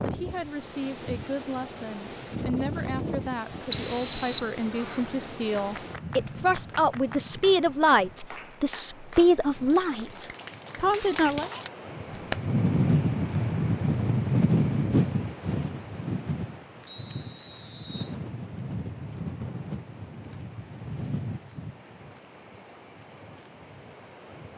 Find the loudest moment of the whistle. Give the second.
4 s.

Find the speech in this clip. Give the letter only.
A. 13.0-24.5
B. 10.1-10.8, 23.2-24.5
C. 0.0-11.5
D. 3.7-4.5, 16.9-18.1
C.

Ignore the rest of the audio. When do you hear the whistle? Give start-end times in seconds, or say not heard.
3.7-4.5, 16.9-18.1.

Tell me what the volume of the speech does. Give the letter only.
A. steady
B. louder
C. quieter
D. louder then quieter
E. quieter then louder
B.